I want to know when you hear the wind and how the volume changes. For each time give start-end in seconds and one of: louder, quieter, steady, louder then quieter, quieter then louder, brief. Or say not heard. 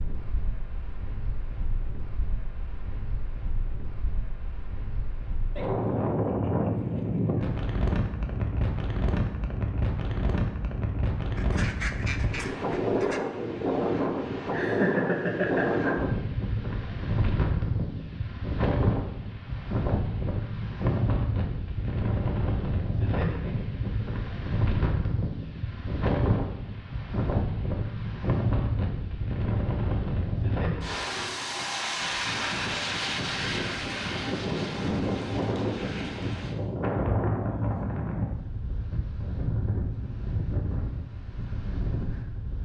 0.0-42.6 steady.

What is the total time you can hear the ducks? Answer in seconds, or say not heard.
2 s.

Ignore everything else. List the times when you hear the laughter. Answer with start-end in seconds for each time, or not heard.
14.5-15.9.